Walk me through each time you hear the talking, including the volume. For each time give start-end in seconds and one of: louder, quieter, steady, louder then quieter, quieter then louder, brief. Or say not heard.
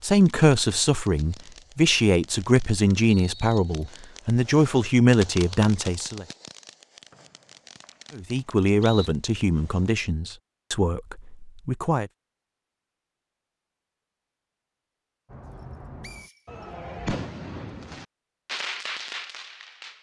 0.0-6.2 steady
8.1-12.1 quieter.